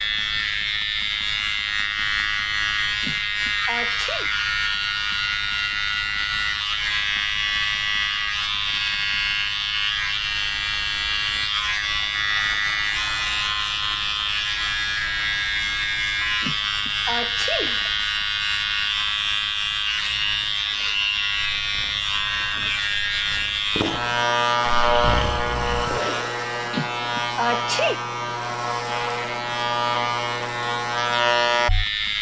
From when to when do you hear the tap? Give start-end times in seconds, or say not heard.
not heard.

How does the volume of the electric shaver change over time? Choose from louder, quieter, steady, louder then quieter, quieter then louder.
steady.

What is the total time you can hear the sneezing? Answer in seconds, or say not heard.
4 s.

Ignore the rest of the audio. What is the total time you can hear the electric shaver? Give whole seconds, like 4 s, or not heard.
32 s.